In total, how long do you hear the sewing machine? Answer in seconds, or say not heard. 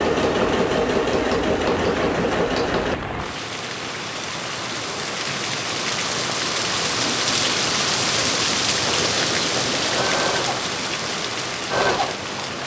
7 s.